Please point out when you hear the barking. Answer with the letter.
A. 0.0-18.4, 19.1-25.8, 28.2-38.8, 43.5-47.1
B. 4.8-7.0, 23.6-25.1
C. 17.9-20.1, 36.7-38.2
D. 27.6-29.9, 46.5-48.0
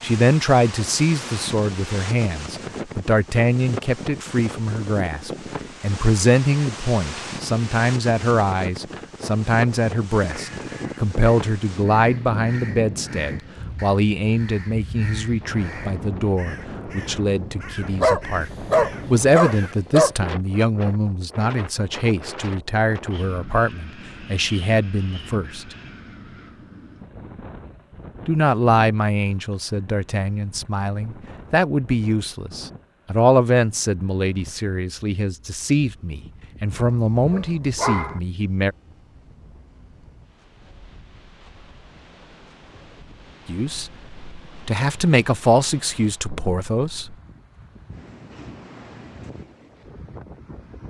C.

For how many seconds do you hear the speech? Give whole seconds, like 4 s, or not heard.
39 s.